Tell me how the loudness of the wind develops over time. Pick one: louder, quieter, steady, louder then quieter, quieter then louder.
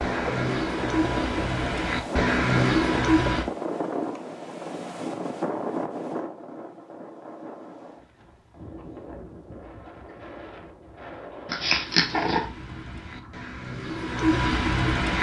quieter.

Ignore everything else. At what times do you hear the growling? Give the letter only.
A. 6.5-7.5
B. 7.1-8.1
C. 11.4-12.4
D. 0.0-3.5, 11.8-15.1
C.